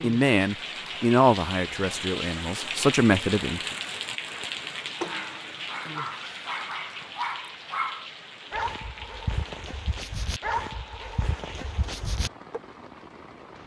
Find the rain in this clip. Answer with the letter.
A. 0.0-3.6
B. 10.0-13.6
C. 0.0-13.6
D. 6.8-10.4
C.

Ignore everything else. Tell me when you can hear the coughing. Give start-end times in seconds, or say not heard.
not heard.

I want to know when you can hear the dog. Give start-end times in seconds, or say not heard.
5.0-12.6.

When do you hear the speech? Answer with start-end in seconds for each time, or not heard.
0.0-3.6.